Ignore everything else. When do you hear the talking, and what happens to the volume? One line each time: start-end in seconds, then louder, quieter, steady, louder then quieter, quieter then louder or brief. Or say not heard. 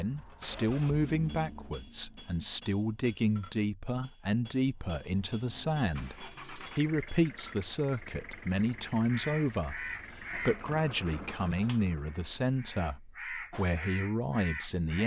0.0-15.0 steady.